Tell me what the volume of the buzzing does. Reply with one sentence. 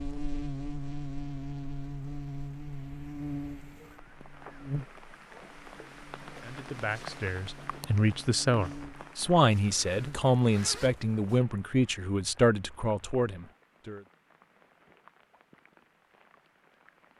The volume of the buzzing goes down, then up.